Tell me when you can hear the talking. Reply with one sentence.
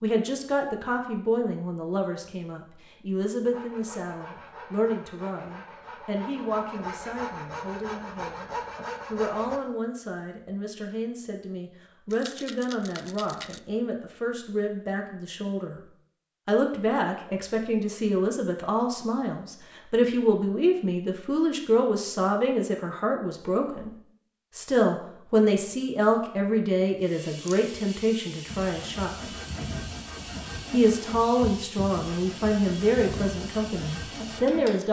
The talking can be heard from 0.0 to 8.5 s, from 9.1 to 15.8 s, from 16.4 to 23.9 s, from 24.6 to 29.3 s and from 30.7 to 34.8 s.